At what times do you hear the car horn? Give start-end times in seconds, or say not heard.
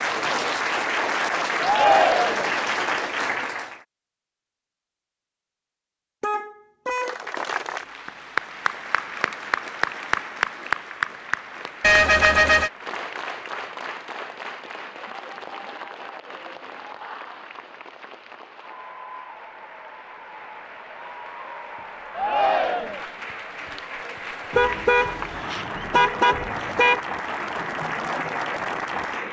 6.2-7.2, 11.8-12.7, 24.5-27.0.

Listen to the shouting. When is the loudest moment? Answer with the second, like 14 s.
2 s.